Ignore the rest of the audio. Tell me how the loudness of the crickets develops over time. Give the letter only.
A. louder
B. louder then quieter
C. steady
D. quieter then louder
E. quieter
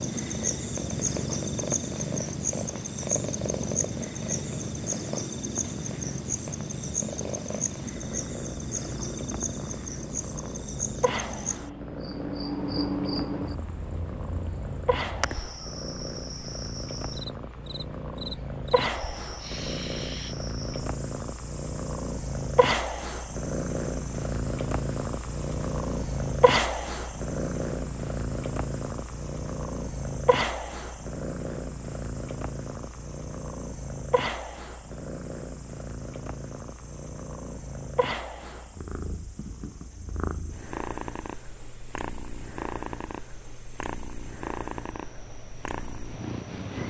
E.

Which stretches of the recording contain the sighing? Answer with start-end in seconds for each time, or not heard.
19.4-20.4.